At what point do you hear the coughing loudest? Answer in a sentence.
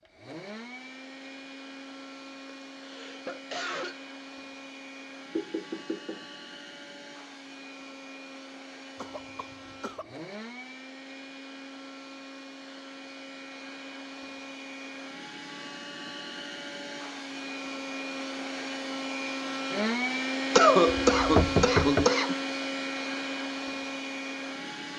The loudest moment of the coughing is at 21 seconds.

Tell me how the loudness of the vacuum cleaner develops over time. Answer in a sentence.
The loudness of the vacuum cleaner goes up.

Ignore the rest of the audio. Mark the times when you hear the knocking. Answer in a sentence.
The knocking can be heard from 5.3 to 6.2 s and from 20.9 to 22.1 s.